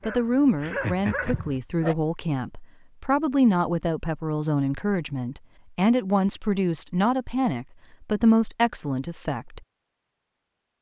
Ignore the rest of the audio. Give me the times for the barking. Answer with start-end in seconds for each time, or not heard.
0.0-1.9.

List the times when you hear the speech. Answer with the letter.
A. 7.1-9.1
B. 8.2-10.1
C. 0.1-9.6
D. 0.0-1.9
C.